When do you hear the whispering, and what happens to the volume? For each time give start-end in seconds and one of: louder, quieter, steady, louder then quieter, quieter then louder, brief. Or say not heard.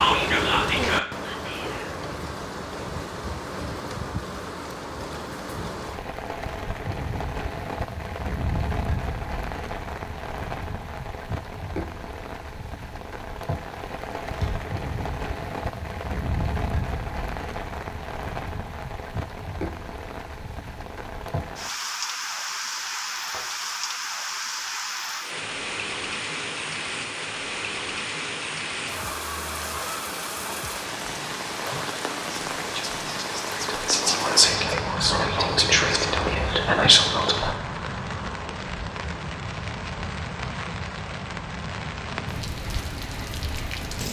0.0-1.9 brief
31.6-37.5 louder.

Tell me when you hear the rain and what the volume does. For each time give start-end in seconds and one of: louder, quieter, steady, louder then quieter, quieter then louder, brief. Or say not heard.
0.0-44.0 steady.